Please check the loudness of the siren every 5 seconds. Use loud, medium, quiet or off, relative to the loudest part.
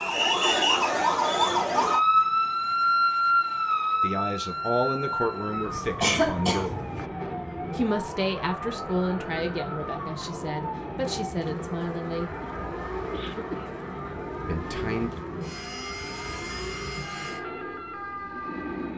loud, quiet, quiet, quiet.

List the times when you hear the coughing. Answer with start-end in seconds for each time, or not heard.
5.7-7.0, 12.4-13.8.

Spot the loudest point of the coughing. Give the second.
6 s.